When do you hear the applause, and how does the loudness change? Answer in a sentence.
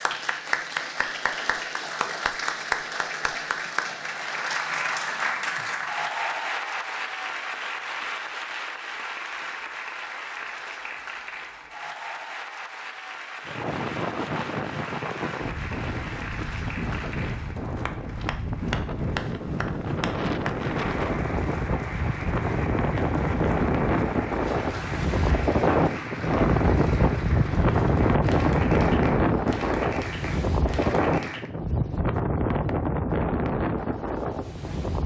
You can hear the applause from 0.0 to 31.5 s, getting quieter.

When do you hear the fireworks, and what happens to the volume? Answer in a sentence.
The fireworks can't be heard in this clip.